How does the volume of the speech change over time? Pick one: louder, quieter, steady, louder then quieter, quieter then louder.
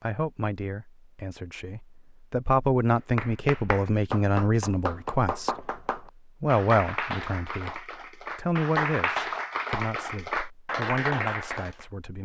louder then quieter.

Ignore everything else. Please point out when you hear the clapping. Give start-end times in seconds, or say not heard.
3.0-11.8.